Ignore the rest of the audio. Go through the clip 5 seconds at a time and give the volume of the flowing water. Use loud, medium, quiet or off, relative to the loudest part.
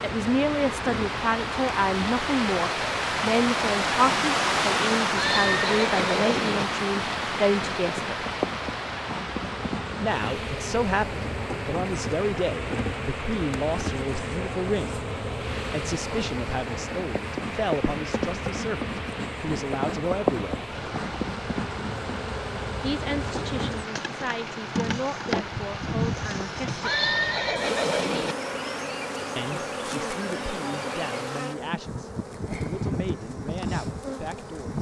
loud, loud, medium, medium, medium, medium, off.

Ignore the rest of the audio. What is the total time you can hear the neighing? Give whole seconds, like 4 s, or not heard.
3 s.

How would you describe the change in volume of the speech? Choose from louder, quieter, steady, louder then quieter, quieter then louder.
quieter.